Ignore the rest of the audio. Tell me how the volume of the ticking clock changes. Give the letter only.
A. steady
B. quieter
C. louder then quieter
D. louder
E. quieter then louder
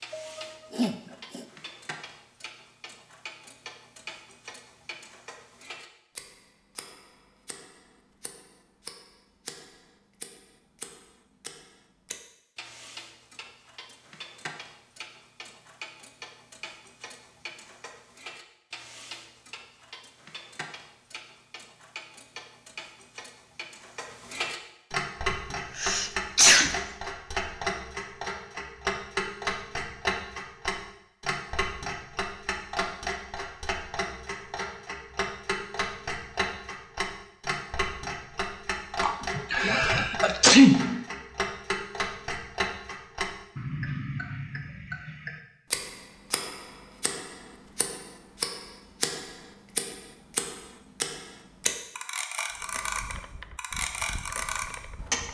D.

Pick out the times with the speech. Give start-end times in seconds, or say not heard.
not heard.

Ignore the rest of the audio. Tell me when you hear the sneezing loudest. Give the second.
41 s.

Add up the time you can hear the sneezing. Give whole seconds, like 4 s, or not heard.
5 s.